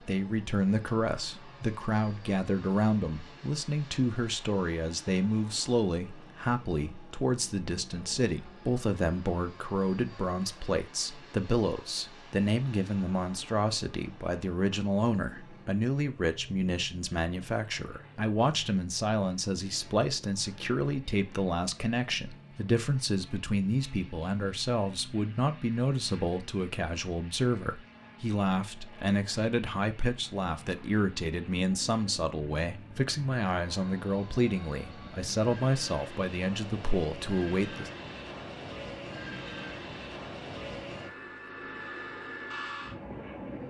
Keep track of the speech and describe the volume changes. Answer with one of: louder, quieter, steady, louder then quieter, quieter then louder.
steady.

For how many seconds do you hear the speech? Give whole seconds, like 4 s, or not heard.
38 s.